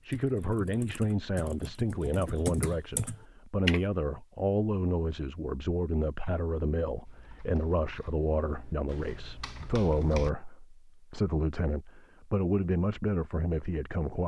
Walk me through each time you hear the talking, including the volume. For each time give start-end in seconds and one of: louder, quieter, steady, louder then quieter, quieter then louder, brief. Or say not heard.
0.1-14.2 steady.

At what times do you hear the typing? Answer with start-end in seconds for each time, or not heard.
0.0-3.8, 7.0-10.3.